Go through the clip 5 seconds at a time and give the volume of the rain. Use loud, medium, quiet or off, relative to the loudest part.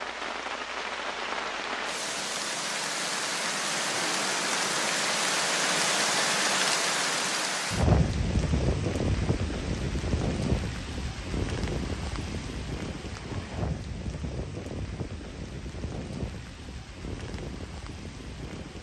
loud, loud, medium, quiet.